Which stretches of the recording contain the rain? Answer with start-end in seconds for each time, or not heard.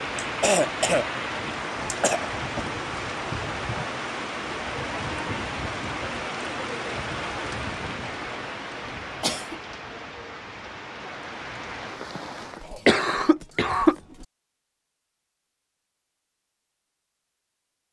0.0-12.7.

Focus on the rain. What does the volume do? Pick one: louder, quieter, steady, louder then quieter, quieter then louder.
quieter.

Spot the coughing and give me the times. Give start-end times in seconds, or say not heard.
0.1-2.6, 9.2-9.6, 12.7-13.9.